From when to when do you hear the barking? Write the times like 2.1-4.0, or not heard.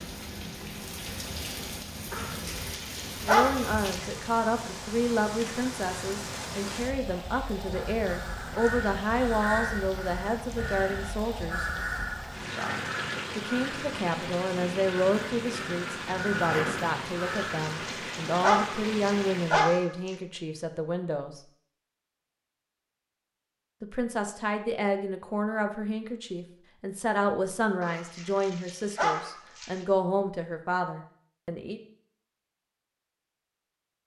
2.1-4.2, 17.4-20.1, 27.8-29.9.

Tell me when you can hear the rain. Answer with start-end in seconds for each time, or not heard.
0.0-19.8.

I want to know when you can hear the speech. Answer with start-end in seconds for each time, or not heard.
3.2-11.7, 13.3-21.4, 23.8-31.8.